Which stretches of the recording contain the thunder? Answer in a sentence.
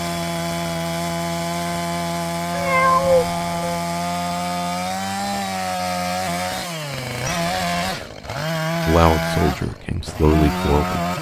The thunder can't be heard in this clip.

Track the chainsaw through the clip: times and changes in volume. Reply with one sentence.
The chainsaw can be heard from 0.0 to 11.1 s, at a steady volume.